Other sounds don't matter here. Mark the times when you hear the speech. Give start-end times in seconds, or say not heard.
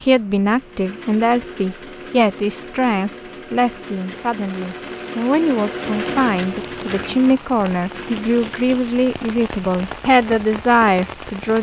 0.0-11.5.